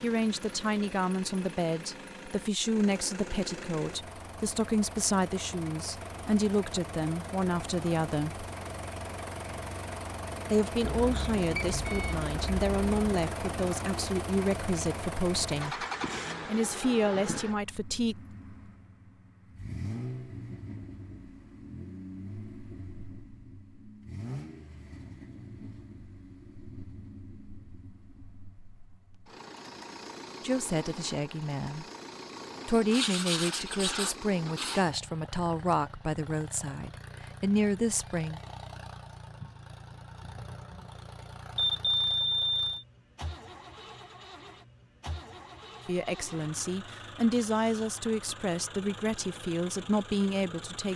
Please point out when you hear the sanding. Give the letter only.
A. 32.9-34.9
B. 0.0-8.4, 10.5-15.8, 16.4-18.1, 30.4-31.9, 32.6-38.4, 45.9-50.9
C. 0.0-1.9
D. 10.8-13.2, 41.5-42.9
A.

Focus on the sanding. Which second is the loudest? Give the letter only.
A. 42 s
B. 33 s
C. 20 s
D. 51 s
B.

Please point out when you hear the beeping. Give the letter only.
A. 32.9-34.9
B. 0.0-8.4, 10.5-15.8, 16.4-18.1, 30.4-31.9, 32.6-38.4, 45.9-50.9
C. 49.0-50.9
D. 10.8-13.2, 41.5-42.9
D.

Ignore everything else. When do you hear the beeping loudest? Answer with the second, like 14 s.
42 s.